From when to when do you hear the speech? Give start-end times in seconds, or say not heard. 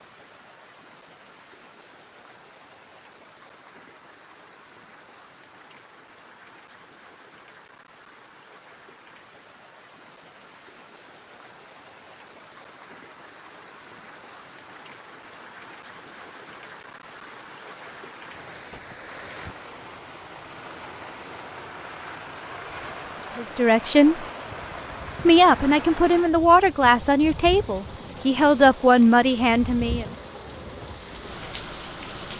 23.4-24.2, 25.2-30.1.